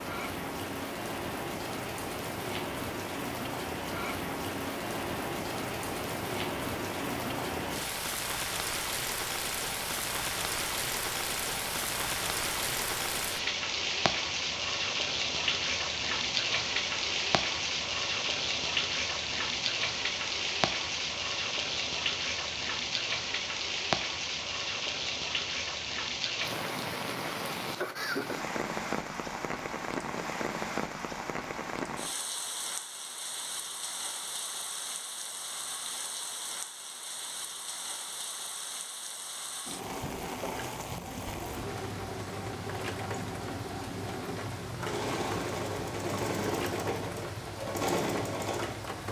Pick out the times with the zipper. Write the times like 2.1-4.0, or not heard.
not heard.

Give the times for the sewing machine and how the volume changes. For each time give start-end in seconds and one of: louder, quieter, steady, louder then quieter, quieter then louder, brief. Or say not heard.
39.6-48.9 louder.